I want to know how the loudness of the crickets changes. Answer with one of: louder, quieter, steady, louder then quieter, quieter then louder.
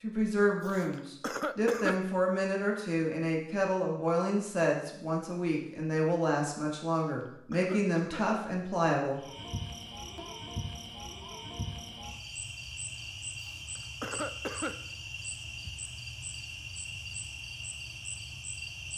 steady.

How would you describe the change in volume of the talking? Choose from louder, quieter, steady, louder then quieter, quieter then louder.
steady.